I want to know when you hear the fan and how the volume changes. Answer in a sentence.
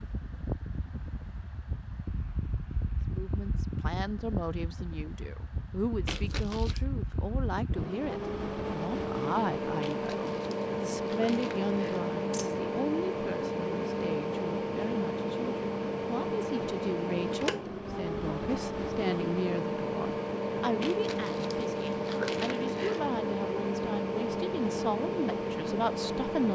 The fan can be heard from 0.0 to 26.4 s, getting louder.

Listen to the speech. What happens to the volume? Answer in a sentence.
The volume of the speech stays about the same.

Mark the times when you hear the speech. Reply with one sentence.
You can hear the speech from 3.0 to 26.4 s.